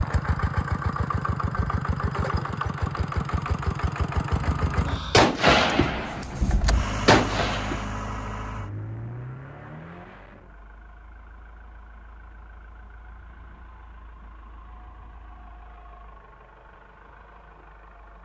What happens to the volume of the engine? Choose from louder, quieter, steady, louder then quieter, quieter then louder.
quieter.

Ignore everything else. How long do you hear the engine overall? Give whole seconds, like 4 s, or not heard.
18 s.